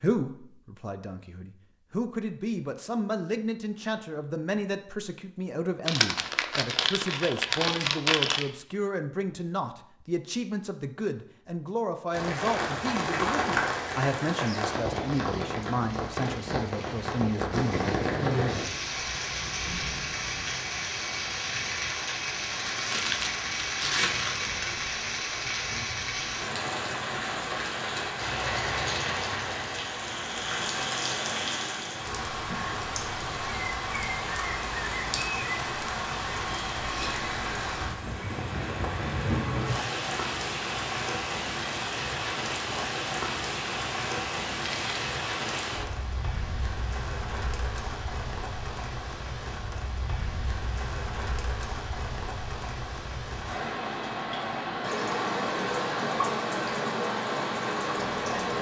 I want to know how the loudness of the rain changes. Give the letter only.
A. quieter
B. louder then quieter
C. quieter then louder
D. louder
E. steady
E.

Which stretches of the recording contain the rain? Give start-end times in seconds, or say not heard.
12.1-58.5.